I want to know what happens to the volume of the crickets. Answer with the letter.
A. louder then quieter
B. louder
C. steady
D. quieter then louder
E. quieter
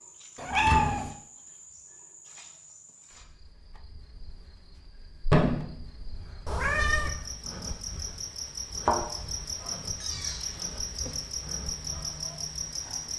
D.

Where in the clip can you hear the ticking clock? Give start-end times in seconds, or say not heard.
not heard.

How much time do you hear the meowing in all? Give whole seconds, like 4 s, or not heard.
3 s.